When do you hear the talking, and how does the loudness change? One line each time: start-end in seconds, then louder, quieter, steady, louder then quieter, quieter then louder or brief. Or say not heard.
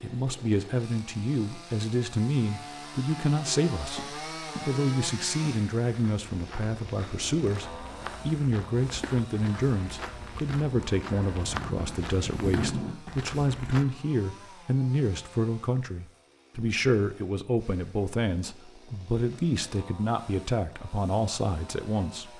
0.0-22.3 steady.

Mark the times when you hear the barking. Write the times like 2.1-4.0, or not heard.
not heard.